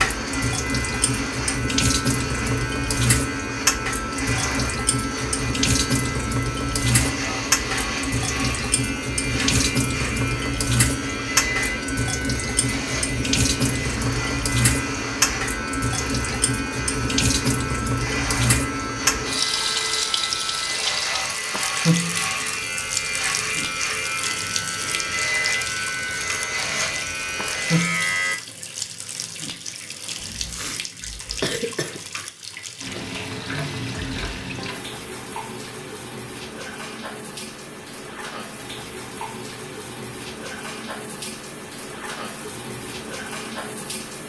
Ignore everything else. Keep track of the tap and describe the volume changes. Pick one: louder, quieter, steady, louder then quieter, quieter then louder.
quieter.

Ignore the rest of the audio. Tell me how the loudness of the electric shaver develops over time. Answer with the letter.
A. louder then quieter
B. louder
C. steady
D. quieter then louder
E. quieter
C.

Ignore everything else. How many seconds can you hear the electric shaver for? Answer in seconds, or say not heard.
28 s.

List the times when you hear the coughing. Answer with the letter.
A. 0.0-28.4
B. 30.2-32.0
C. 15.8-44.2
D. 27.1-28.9
B.